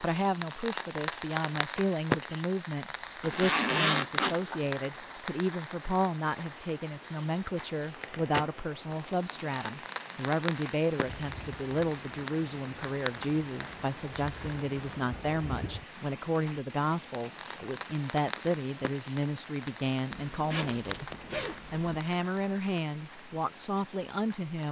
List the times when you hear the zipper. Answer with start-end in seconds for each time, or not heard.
3.2-4.7, 20.1-21.9.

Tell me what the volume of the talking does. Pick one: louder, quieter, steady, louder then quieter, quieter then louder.
steady.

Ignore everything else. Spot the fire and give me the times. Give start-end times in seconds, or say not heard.
0.0-24.6.